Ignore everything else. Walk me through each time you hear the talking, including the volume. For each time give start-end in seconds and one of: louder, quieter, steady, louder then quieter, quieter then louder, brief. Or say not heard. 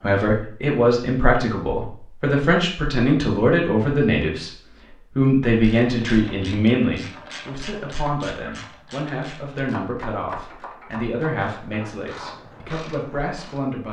0.0-13.8 quieter.